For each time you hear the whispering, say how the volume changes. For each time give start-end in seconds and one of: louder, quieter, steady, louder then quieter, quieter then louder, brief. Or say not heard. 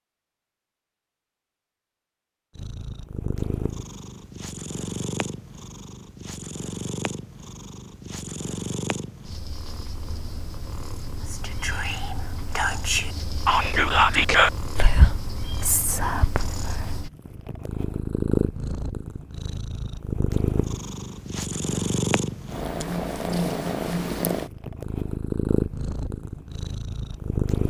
11.2-16.9 louder then quieter.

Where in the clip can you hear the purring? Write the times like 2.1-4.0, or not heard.
2.5-27.6.